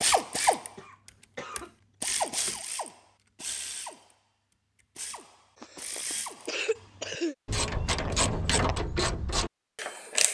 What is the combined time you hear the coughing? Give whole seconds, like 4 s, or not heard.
3 s.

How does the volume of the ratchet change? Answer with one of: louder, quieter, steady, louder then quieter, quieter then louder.
quieter then louder.